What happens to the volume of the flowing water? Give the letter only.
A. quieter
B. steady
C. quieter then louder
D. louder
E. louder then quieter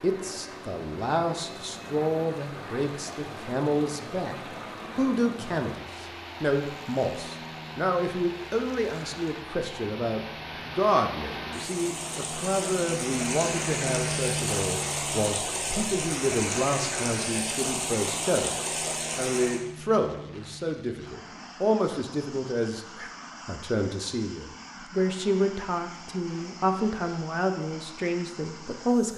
D.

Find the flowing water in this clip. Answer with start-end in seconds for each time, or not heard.
0.0-19.6.